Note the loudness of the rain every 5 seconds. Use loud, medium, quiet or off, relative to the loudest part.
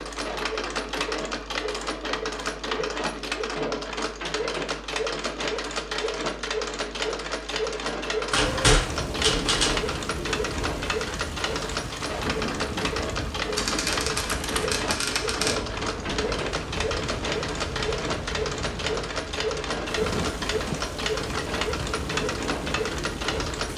off, loud, loud, loud, loud.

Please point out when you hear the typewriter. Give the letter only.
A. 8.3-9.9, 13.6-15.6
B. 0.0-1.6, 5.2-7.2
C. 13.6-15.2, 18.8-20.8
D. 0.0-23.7
A.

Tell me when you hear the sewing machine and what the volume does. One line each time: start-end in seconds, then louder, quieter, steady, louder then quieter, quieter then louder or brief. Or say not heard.
0.0-23.7 steady.